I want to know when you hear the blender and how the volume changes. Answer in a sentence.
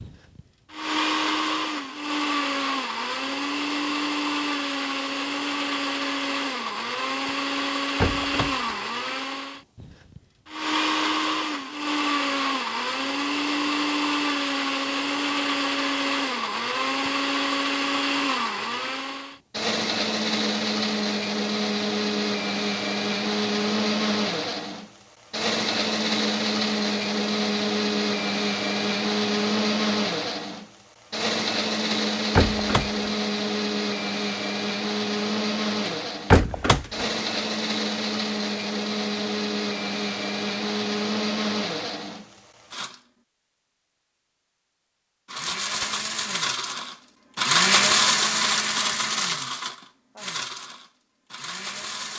You can hear the blender from 0.0 to 43.0 s, at a steady volume; and from 45.2 to 52.1 s, getting louder then quieter.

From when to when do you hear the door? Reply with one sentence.
You can hear the door from 7.5 to 8.8 s, from 31.9 to 33.1 s and from 35.9 to 37.0 s.